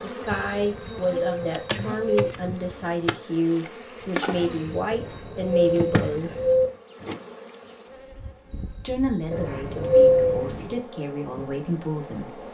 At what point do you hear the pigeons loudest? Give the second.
10 s.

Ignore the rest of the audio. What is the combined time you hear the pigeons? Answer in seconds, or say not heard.
5 s.